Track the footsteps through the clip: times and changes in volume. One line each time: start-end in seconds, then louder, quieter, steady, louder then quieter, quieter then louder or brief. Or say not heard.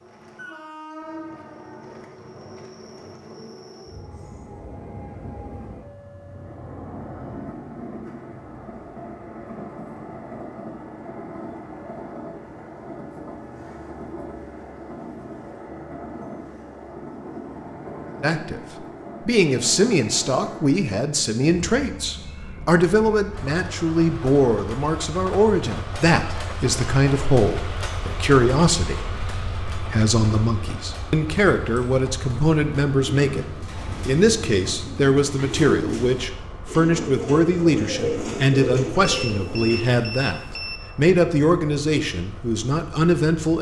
not heard.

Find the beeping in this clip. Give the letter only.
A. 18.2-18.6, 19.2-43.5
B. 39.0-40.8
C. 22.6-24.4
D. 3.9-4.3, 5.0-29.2
B.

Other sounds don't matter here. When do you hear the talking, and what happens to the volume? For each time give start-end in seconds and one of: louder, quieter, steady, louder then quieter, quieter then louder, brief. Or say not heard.
18.2-18.6 brief
19.2-43.5 steady.